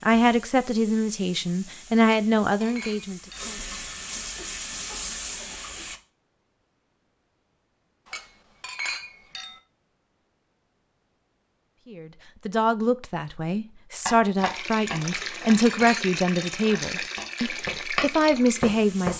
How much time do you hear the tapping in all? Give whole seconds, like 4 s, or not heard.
5 s.